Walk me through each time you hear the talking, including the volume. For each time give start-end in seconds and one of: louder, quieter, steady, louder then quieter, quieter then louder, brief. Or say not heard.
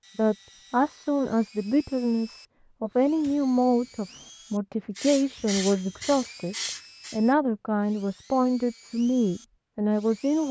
0.1-10.4 steady.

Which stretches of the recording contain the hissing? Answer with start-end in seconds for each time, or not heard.
5.0-7.2.